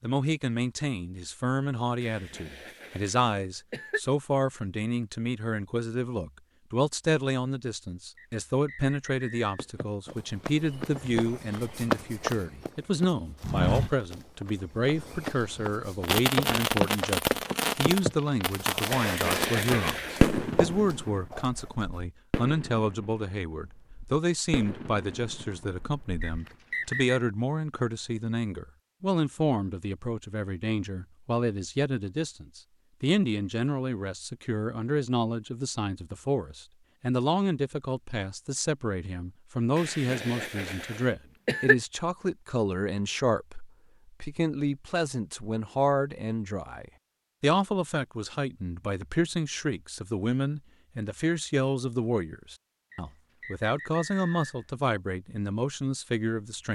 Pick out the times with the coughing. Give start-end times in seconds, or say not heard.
2.0-4.0, 18.9-20.4, 39.8-41.8.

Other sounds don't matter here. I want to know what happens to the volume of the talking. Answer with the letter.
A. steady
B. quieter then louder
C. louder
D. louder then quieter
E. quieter
A.